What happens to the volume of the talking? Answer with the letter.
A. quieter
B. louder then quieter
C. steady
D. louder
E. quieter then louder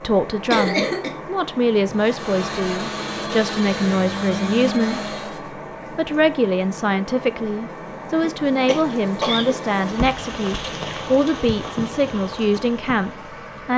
C.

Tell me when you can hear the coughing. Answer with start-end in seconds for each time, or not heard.
0.5-1.1, 8.2-9.6.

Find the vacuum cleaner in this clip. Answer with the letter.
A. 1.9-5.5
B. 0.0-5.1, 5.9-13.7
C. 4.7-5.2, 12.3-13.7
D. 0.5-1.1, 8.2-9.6
A.